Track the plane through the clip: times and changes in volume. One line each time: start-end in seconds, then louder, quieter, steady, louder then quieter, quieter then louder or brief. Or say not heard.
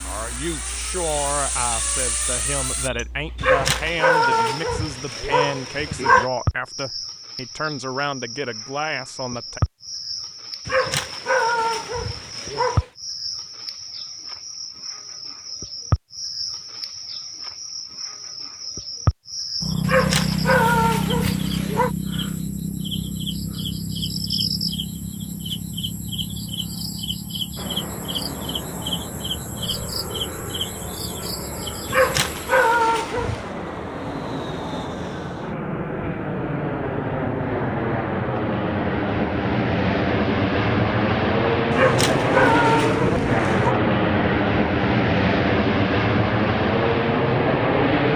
0.0-2.9 brief
27.6-48.1 louder.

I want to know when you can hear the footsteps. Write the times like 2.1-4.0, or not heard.
not heard.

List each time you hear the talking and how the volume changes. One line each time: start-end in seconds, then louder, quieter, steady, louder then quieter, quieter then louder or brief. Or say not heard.
0.1-9.6 steady.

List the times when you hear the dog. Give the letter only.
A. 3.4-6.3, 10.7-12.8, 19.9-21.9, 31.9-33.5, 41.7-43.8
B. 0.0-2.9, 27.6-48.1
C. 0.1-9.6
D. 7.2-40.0
A.